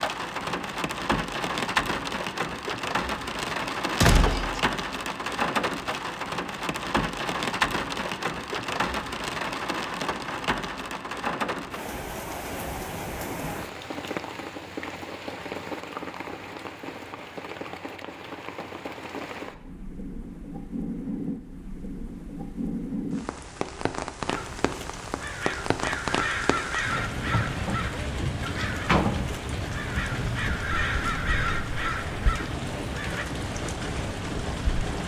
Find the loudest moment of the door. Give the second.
4 s.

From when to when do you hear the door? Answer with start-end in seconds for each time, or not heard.
3.5-4.7, 28.6-29.1.